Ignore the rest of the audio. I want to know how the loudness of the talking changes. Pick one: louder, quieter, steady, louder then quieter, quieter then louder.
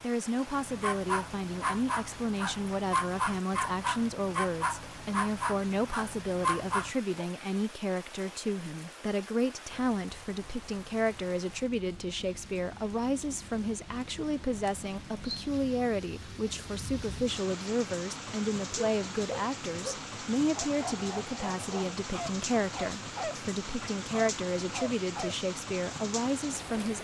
steady.